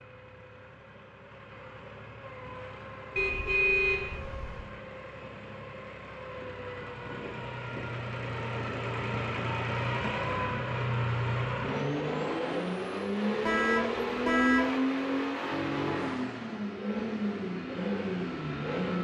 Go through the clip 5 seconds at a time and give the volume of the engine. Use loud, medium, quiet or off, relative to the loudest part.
quiet, medium, loud, loud.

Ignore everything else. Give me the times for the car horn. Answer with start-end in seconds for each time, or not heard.
3.1-4.7, 13.4-14.8.